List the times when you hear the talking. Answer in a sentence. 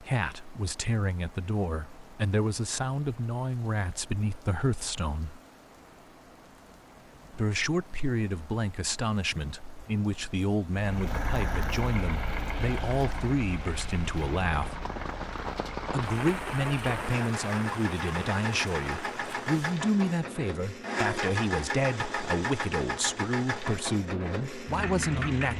You can hear the talking from 0.0 to 5.4 s, from 7.3 to 14.8 s and from 15.8 to 25.5 s.